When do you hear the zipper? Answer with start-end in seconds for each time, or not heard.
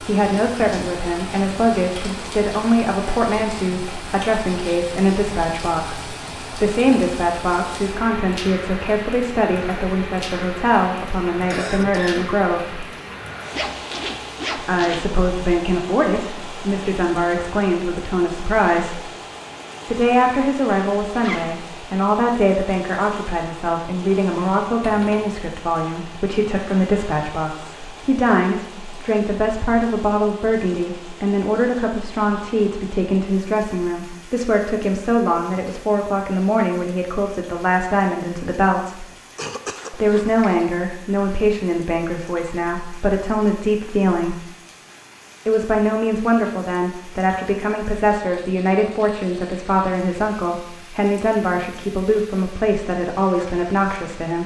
13.5-15.1, 21.1-21.6, 39.8-40.6.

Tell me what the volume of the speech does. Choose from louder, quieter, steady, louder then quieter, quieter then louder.
steady.